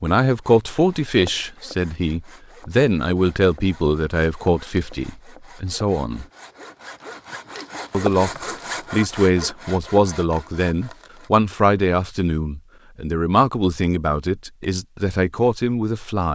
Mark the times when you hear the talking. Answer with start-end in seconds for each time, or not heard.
0.0-6.2, 7.9-16.3.